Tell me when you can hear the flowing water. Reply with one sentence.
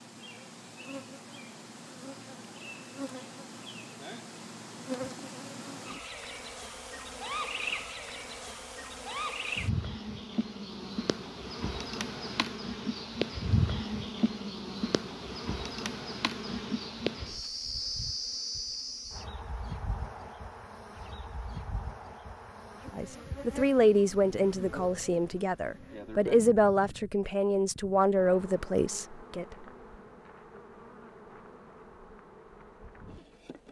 You can't hear the flowing water here.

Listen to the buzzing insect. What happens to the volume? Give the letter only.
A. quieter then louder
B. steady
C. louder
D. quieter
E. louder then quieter
E.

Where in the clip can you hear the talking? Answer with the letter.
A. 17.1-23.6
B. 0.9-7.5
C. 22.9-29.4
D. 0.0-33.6
C.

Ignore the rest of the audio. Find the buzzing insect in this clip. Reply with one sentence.
The buzzing insect can be heard from 0.0 to 33.6 s.